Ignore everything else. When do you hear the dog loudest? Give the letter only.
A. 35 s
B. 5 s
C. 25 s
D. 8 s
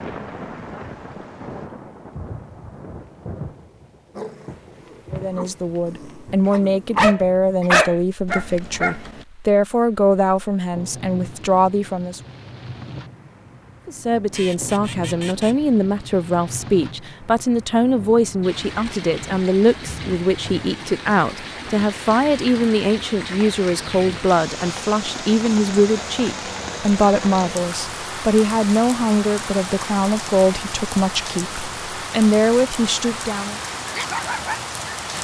D.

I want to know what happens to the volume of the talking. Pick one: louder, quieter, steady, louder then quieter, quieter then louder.
steady.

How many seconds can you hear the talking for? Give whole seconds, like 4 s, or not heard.
27 s.